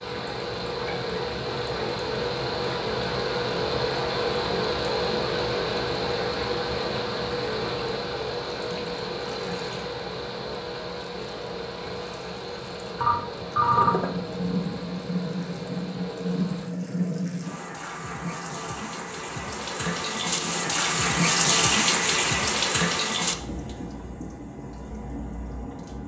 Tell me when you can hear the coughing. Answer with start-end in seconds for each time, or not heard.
not heard.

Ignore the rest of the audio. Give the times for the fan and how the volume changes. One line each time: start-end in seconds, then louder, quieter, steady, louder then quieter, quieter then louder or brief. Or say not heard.
0.0-16.7 quieter.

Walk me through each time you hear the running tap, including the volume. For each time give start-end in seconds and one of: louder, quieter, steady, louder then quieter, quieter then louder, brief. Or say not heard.
0.0-26.0 louder.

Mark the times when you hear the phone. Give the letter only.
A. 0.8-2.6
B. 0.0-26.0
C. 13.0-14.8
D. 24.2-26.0
C.